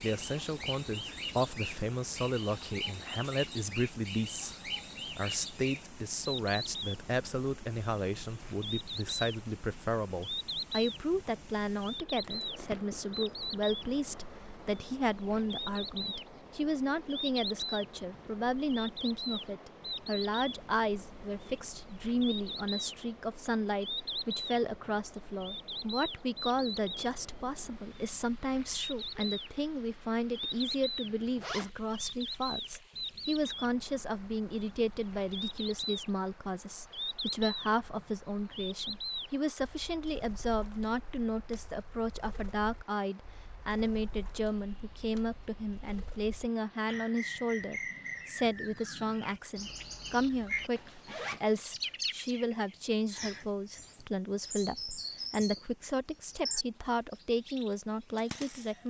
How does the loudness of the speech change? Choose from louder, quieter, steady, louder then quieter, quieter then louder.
steady.